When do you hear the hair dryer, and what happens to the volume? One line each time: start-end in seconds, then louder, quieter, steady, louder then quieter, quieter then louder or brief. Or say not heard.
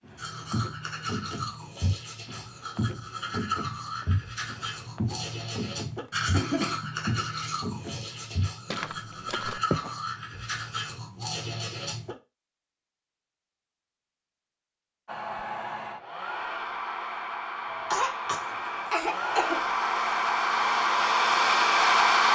15.1-22.2 louder.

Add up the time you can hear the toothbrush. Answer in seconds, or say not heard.
12 s.